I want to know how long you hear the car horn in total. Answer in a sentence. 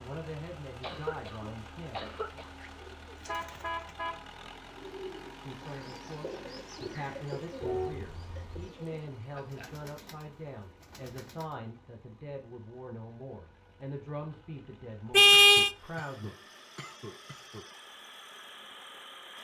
You can hear the car horn for 3 seconds altogether.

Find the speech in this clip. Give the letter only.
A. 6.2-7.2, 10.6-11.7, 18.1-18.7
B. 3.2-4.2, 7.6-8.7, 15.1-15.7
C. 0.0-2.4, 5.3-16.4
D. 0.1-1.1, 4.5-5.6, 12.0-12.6
C.